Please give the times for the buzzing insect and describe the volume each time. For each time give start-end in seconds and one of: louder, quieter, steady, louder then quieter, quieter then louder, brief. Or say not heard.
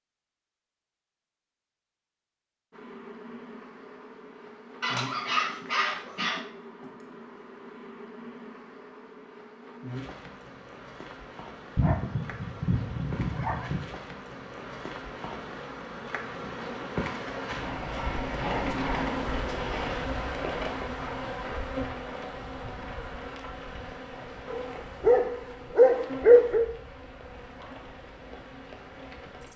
2.7-29.5 louder then quieter.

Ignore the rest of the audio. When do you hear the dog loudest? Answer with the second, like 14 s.
26 s.